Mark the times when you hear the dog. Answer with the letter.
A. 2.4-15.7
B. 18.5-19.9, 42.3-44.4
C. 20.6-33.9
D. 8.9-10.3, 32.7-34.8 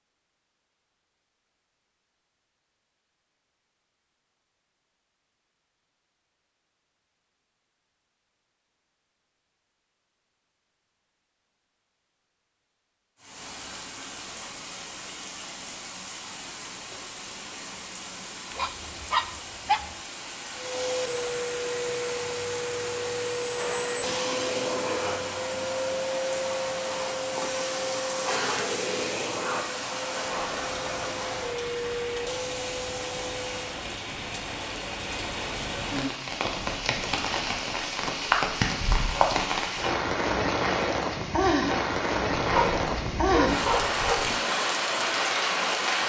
B.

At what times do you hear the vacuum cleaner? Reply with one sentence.
You can hear the vacuum cleaner from 20.6 to 33.9 s.